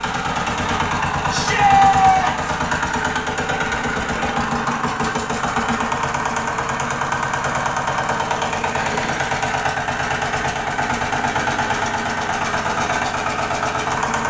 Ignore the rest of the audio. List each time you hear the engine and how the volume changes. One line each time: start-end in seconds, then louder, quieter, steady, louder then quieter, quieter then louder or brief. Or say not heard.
0.0-14.2 steady.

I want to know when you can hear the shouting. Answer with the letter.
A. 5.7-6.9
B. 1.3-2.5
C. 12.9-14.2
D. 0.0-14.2
B.